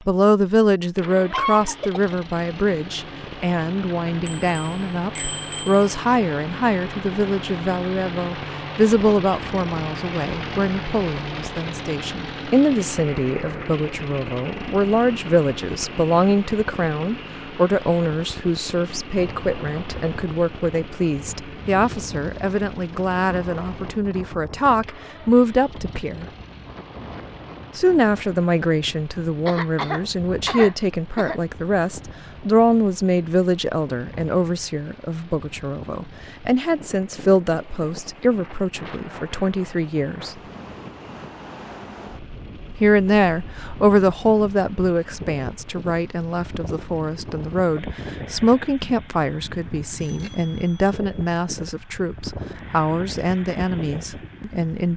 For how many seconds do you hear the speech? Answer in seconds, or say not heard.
51 s.